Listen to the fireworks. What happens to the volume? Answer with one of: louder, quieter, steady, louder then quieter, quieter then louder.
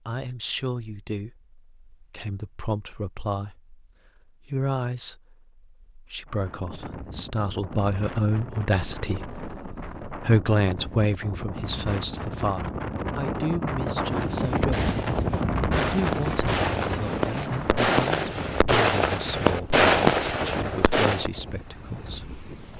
louder.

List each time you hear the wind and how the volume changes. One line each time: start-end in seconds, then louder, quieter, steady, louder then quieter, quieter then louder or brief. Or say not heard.
6.2-22.7 louder then quieter.